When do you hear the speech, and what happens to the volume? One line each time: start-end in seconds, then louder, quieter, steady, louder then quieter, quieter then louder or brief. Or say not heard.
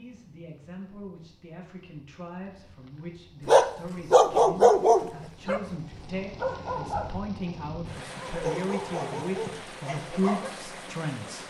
0.0-11.4 louder.